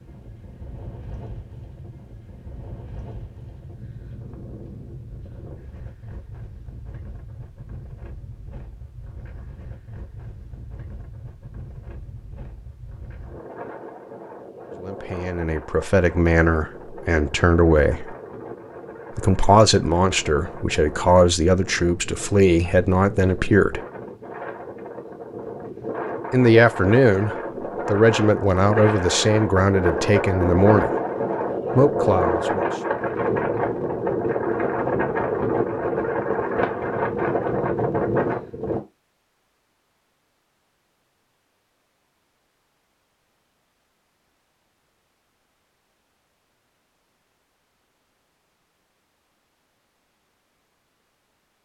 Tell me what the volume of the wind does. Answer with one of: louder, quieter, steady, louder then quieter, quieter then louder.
louder.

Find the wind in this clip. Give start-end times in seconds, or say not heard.
0.0-38.8.